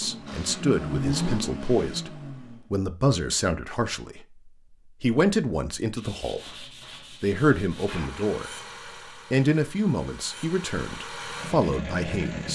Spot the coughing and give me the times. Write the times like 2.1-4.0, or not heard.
not heard.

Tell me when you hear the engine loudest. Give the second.
1 s.